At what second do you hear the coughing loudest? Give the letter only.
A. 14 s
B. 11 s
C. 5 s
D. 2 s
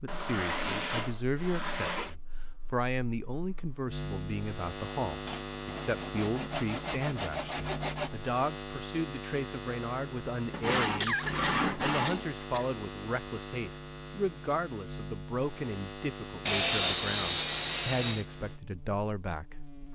B.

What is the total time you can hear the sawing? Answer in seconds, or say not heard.
9 s.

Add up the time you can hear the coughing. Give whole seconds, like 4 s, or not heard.
2 s.